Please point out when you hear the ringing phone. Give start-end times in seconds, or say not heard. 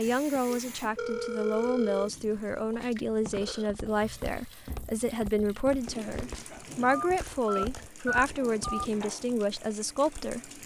0.3-2.1, 6.8-8.8.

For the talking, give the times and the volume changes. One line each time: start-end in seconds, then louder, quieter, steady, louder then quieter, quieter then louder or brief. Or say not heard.
0.0-10.5 steady.